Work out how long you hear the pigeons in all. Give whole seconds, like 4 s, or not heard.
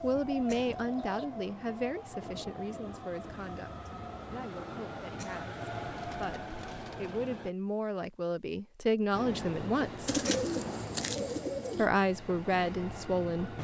4 s.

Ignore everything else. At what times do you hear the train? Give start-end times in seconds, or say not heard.
0.0-7.5, 9.1-13.5.